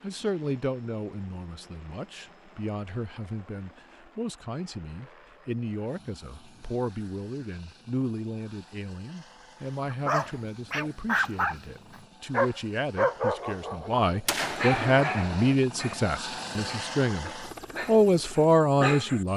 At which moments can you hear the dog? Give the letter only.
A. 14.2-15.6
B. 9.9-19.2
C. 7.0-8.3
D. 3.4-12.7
B.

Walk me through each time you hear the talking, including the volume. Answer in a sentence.
You can hear the talking from 0.0 to 19.3 s, getting louder.